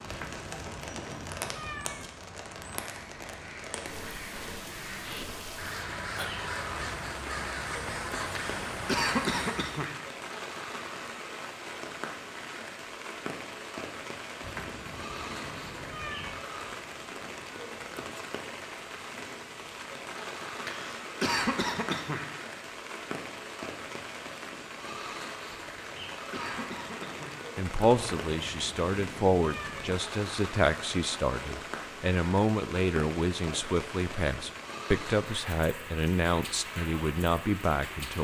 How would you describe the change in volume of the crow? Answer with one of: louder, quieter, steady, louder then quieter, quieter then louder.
louder.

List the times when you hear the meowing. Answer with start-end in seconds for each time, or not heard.
0.1-2.1, 14.4-16.4, 27.9-29.9.